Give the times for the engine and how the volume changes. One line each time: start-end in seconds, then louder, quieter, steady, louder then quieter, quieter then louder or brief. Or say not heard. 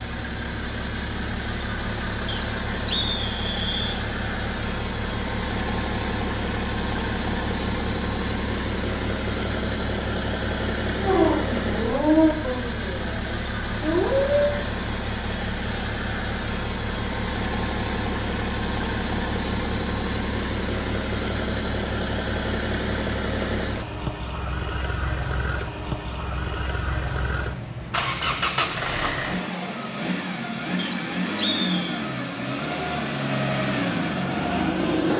0.0-35.1 steady.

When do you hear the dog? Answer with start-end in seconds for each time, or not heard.
11.0-14.6.